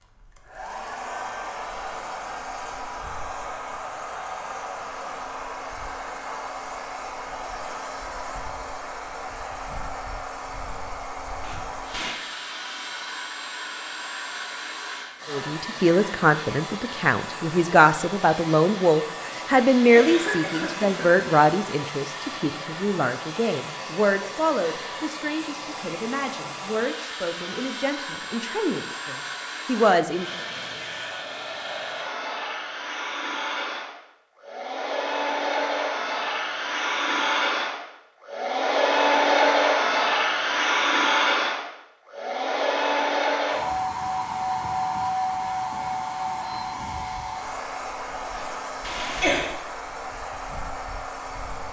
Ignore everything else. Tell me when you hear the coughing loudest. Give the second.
49 s.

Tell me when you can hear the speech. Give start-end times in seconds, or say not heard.
15.2-30.3.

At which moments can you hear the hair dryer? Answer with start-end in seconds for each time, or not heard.
0.0-51.6.